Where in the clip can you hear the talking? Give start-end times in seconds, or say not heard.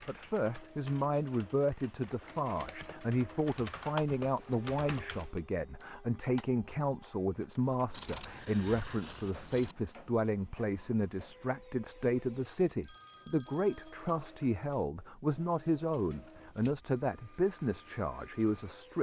0.1-18.9.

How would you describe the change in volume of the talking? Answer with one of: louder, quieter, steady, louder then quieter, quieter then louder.
steady.